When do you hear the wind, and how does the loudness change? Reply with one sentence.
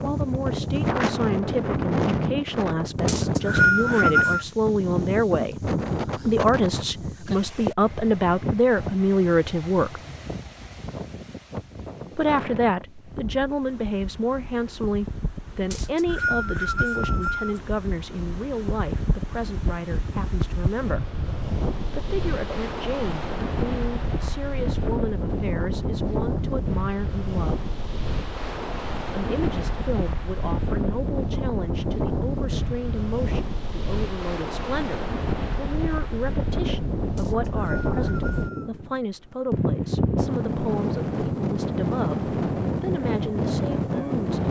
You can hear the wind from 0.0 to 44.4 s, getting quieter then louder.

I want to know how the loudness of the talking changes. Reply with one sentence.
The volume of the talking goes down.